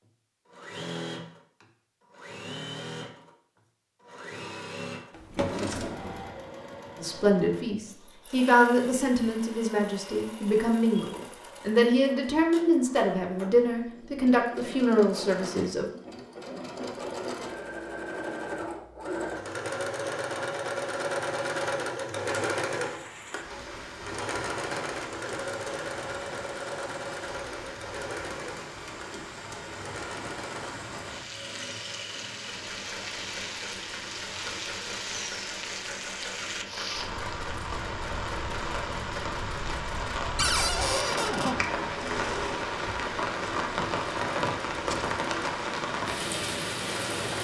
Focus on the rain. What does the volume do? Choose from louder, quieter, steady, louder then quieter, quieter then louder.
louder.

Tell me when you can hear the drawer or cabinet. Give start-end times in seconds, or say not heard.
5.1-6.2, 40.4-41.5.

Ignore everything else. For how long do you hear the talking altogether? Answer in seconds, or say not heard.
9 s.